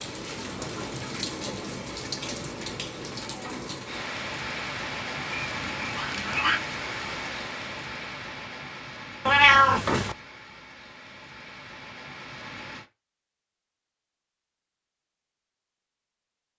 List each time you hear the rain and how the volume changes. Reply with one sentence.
The rain can be heard from 0.0 to 12.9 s, getting quieter.